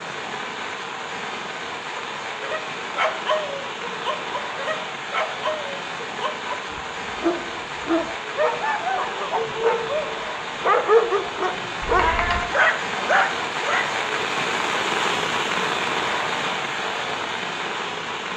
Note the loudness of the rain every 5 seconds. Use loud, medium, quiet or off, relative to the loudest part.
medium, medium, loud, loud.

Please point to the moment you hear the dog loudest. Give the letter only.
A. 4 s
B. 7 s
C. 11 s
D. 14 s
C.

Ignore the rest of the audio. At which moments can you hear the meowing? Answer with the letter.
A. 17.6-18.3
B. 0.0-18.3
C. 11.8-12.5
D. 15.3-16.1
C.